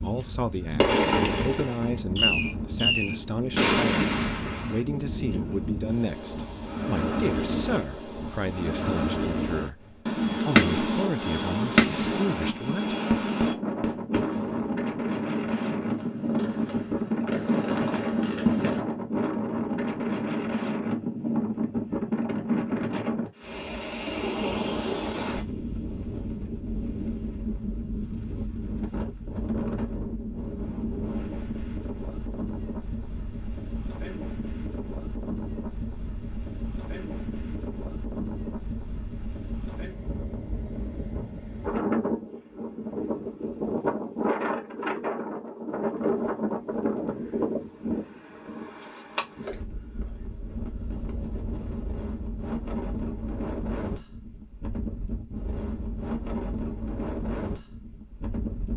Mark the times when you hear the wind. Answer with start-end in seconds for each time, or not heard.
0.0-58.7.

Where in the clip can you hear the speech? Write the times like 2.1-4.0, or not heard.
0.0-12.9.